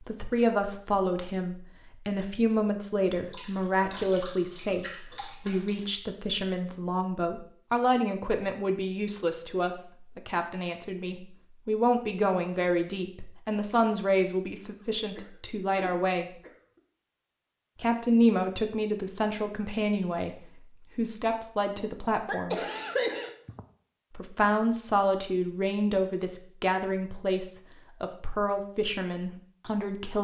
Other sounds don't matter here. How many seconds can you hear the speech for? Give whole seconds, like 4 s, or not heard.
27 s.